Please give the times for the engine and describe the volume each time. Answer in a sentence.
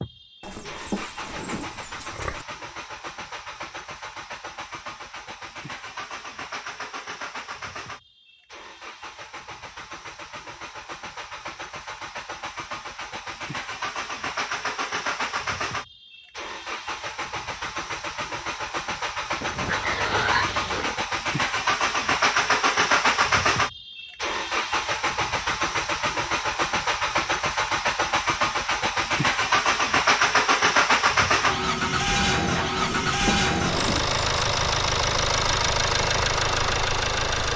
You can hear the engine from 0.0 to 37.5 s, getting louder.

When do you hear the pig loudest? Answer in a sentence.
The loudest moment of the pig is at 20 seconds.